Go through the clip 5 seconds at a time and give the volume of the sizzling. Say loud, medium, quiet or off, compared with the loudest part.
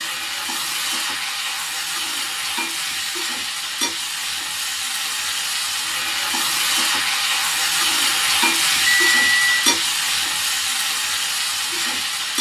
medium, loud, loud.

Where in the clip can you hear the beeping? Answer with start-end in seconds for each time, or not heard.
8.8-9.6.